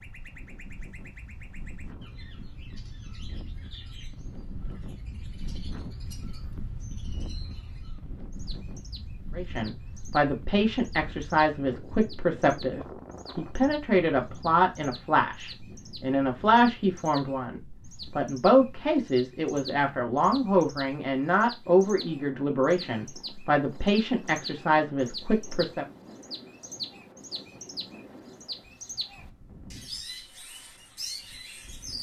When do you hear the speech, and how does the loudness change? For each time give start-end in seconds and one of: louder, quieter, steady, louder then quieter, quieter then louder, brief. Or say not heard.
9.3-25.9 steady.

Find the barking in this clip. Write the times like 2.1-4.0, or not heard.
not heard.